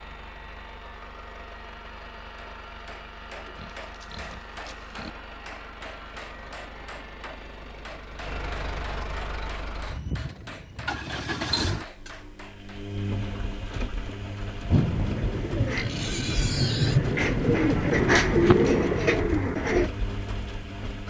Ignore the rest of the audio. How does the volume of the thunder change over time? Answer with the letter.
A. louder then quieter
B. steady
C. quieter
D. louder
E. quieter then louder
A.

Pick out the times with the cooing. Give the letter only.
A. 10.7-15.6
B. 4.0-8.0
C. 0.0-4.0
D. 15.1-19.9
D.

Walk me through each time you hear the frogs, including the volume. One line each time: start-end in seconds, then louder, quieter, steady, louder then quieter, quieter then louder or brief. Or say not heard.
not heard.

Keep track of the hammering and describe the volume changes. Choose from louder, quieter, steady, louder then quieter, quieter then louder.
steady.